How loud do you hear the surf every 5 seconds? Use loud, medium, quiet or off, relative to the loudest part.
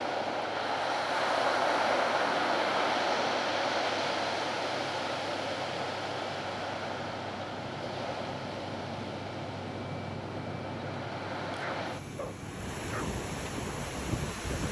loud, medium, medium.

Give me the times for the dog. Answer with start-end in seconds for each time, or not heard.
11.6-13.1.